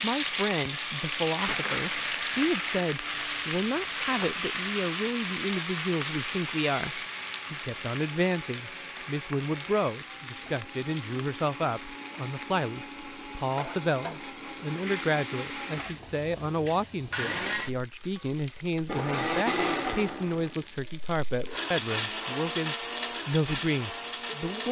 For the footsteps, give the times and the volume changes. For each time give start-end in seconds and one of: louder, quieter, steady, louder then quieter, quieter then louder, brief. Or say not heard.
not heard.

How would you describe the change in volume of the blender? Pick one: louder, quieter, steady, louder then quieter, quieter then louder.
louder.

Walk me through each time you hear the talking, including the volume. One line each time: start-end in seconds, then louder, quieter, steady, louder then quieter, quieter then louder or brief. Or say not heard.
0.0-24.6 steady.